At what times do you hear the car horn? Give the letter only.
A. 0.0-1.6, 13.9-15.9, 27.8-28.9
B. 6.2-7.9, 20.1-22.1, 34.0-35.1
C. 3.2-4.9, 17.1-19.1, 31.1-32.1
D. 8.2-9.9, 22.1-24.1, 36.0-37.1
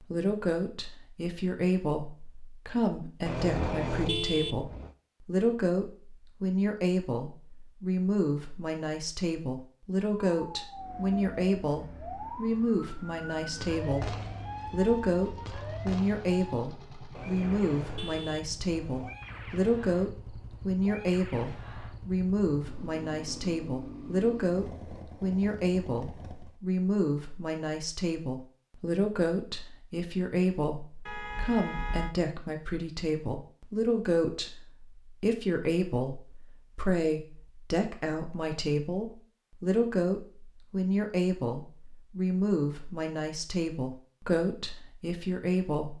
C.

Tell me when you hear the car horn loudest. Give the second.
4 s.